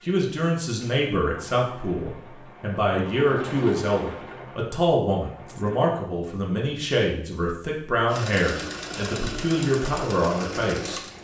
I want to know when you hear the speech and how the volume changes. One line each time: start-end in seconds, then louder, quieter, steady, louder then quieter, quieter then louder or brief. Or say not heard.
0.1-11.0 steady.